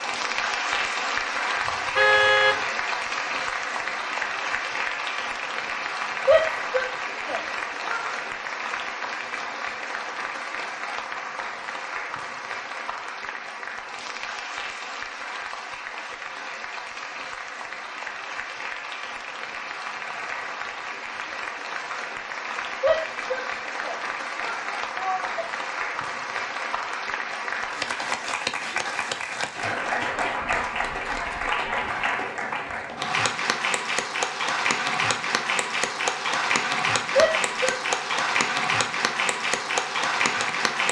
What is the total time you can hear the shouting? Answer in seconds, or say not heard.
5 s.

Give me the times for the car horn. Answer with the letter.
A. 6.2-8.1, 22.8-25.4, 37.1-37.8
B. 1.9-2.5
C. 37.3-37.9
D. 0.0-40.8
B.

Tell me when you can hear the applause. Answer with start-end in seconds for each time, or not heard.
0.0-40.8.